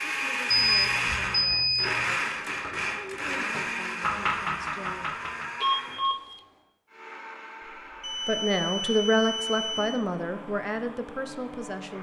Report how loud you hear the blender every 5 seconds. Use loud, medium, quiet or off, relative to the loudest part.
loud, quiet, quiet.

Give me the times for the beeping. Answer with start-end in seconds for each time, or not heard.
0.5-2.1, 5.6-6.2, 8.0-10.1.